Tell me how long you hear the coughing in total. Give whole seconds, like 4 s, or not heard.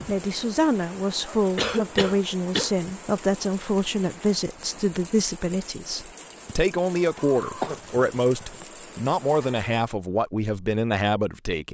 2 s.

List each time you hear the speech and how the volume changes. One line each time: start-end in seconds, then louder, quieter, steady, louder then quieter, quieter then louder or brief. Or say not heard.
0.1-11.6 steady.